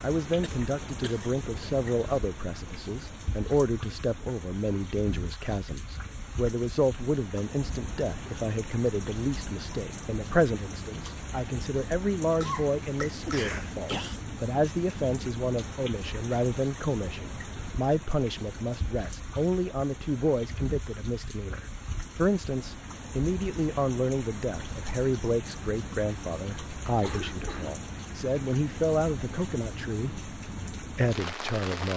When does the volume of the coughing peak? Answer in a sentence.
The volume of the coughing peaks at 13 seconds.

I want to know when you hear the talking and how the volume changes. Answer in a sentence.
The talking can be heard from 0.0 to 31.9 s, at a steady volume.